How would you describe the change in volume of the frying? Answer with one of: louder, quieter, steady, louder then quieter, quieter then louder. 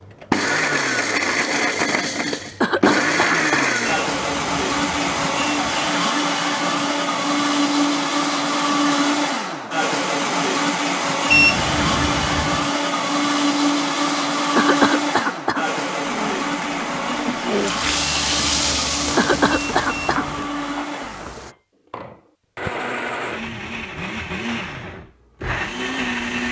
louder then quieter.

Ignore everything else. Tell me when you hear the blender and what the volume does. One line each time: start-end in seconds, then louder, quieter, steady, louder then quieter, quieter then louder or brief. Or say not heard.
0.1-26.4 quieter.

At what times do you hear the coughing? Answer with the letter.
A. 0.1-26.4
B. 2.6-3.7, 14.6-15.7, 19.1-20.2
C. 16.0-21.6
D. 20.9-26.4
B.